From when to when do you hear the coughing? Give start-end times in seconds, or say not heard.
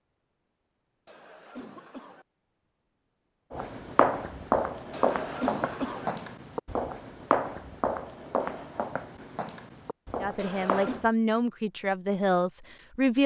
1.1-2.2, 4.9-6.1, 10.3-11.1.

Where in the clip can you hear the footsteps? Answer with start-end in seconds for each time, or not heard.
3.5-11.1.